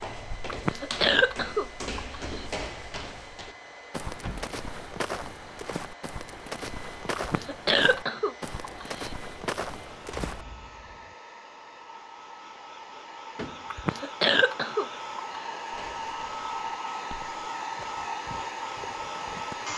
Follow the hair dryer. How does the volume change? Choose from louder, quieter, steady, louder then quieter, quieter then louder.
louder.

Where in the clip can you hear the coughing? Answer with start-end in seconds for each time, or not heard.
0.5-2.5, 7.2-9.1, 13.7-15.4.